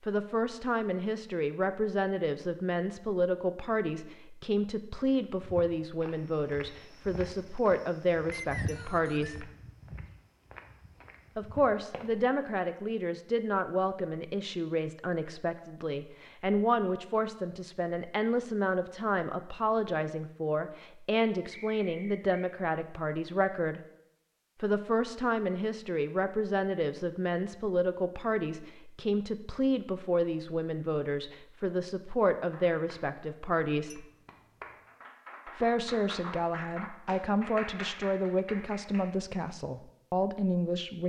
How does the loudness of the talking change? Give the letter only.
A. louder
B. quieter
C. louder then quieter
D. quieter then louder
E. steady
E.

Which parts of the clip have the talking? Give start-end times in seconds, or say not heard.
0.1-9.5, 11.3-23.8, 24.6-34.0, 35.5-41.0.